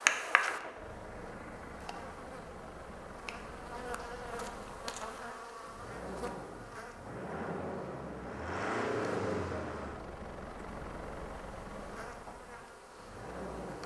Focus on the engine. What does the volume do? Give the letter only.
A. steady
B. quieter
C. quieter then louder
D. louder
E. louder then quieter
E.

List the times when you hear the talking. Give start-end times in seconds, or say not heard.
not heard.